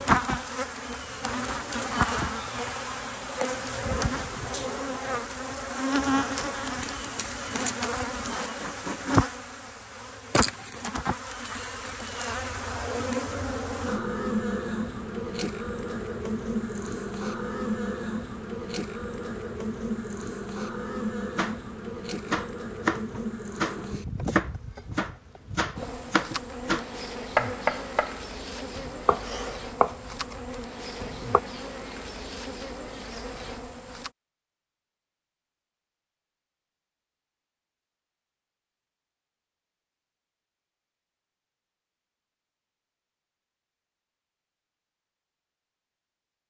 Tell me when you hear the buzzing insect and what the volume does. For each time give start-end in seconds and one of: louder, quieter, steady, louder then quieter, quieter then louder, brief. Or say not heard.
0.0-34.1 quieter.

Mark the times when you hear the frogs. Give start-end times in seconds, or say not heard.
not heard.